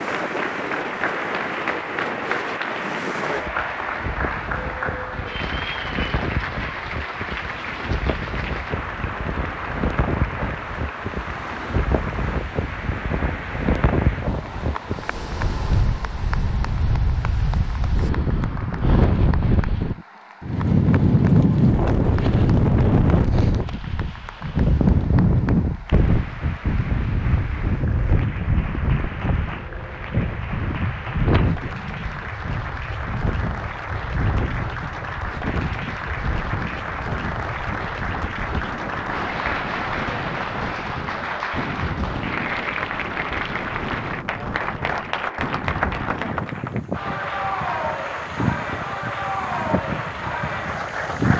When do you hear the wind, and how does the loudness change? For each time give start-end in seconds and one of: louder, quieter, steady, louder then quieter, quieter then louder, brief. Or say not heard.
0.0-51.3 louder then quieter.